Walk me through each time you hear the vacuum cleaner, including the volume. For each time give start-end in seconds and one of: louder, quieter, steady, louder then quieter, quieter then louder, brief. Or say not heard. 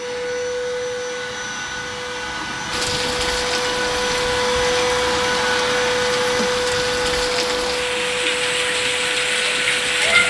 0.0-10.2 louder then quieter.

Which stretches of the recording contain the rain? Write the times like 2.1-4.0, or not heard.
2.7-10.2.